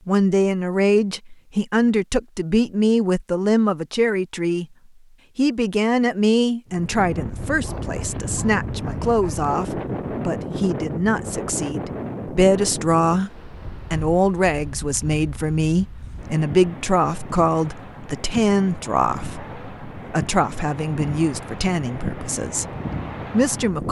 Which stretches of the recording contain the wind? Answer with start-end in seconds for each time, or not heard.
6.7-23.8.